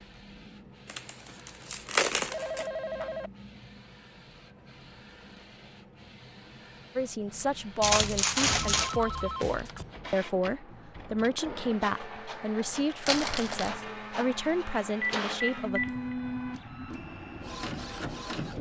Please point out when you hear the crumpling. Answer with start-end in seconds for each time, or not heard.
0.8-2.6, 7.8-8.9, 12.7-13.8.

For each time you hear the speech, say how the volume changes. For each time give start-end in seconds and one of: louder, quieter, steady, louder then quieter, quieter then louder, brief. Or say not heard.
7.0-15.8 steady.